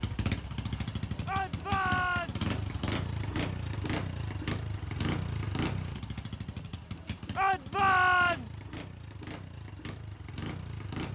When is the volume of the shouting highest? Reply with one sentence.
The loudest moment of the shouting is at 8 seconds.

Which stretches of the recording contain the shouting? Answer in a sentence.
You can hear the shouting from 1.2 to 2.5 s and from 7.3 to 8.5 s.